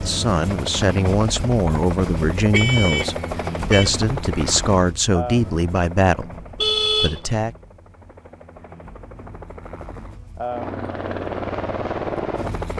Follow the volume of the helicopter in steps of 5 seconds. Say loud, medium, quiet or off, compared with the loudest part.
loud, medium, loud.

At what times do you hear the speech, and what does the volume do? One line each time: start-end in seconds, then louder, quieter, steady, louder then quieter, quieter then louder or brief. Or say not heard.
0.0-6.3 steady
7.0-7.5 brief.